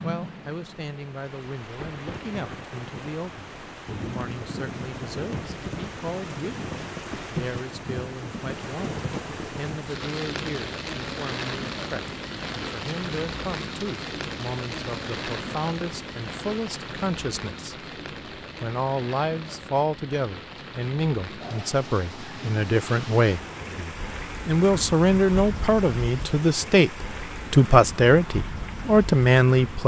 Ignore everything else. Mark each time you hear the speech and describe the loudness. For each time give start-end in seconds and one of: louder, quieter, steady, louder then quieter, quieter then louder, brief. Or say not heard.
0.0-29.8 louder.